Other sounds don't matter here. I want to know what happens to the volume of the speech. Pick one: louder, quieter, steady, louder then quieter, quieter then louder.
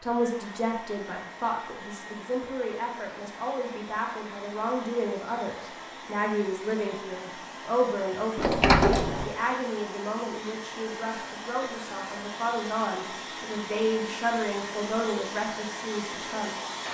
steady.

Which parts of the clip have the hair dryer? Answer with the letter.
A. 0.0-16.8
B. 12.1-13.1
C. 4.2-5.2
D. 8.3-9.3
A.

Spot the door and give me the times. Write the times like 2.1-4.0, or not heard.
8.3-9.3.